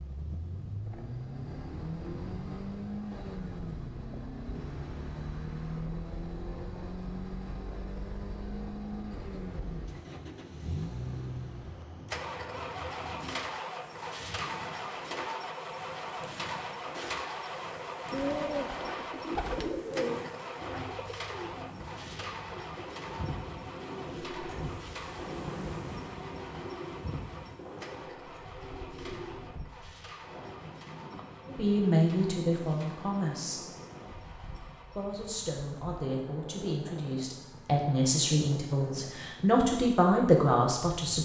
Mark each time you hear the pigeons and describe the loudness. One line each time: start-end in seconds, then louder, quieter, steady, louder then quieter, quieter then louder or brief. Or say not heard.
18.1-29.6 quieter.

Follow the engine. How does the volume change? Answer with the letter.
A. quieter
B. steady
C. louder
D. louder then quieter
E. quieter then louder
A.